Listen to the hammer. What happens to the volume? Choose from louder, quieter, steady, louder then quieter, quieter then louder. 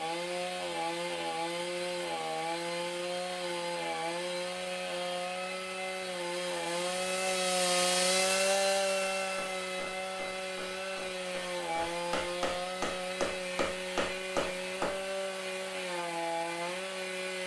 louder.